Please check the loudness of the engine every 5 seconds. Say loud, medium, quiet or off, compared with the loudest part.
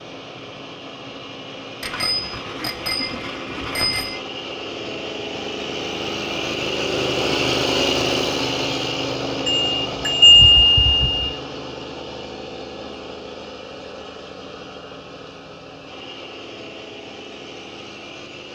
medium, loud, medium, quiet.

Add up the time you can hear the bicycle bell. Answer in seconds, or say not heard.
4 s.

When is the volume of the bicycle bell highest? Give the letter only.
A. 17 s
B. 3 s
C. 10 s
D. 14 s
C.